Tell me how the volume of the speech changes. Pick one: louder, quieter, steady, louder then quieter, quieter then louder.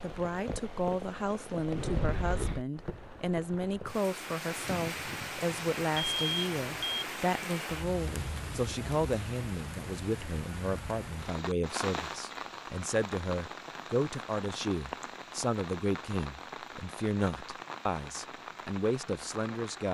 steady.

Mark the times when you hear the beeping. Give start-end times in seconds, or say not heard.
6.0-7.0.